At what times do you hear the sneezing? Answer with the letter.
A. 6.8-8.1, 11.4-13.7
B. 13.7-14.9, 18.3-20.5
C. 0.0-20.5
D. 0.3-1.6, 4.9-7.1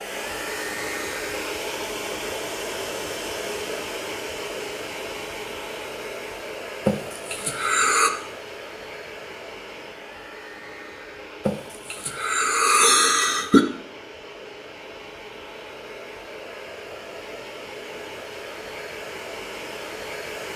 A.